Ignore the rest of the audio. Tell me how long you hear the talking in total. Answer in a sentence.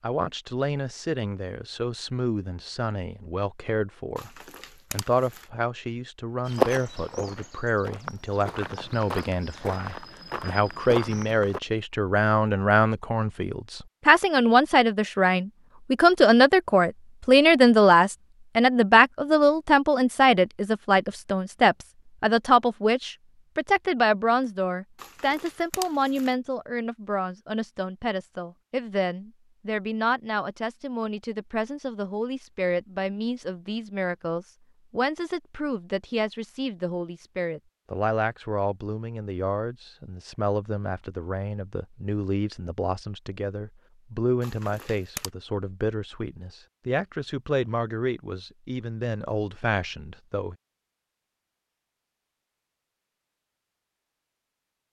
You can hear the talking for 50 seconds altogether.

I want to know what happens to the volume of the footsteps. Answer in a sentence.
The volume of the footsteps goes up.